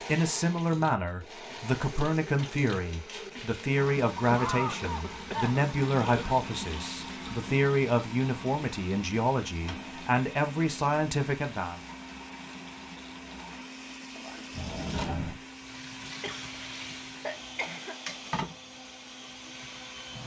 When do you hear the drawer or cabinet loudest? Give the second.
15 s.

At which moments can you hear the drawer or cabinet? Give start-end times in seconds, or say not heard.
2.4-3.4, 9.6-10.1, 14.5-15.4.